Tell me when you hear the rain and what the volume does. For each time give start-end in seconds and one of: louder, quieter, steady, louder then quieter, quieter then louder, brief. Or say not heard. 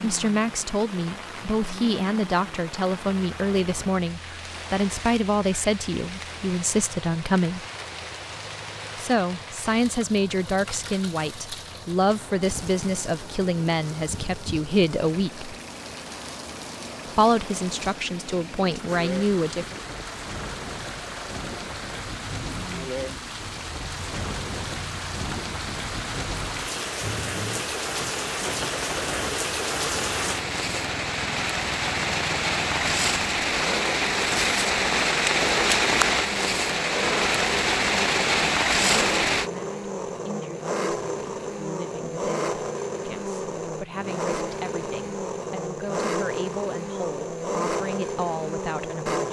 0.0-39.5 louder.